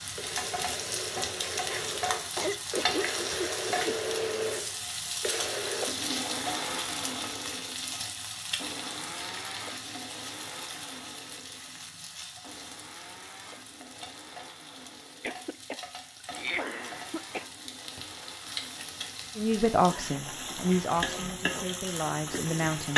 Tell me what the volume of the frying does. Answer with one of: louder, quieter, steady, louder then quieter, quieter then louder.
quieter then louder.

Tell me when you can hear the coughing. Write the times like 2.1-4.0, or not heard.
1.9-4.0, 15.2-17.5.